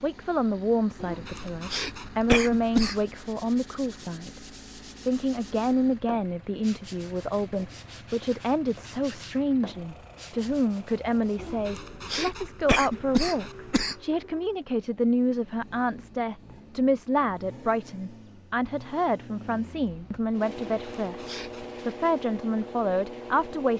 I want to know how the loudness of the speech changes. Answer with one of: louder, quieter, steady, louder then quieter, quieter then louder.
steady.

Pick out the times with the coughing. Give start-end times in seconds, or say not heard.
1.0-3.0, 11.3-13.9, 20.6-21.8.